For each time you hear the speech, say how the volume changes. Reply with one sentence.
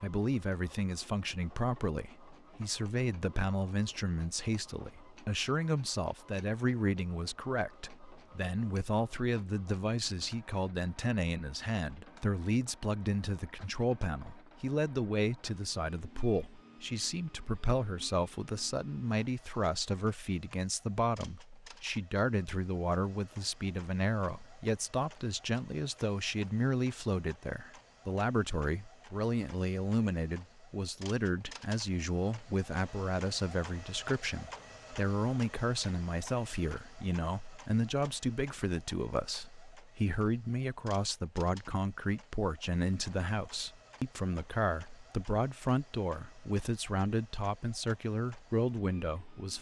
The speech can be heard from 0.0 to 49.5 s, at a steady volume.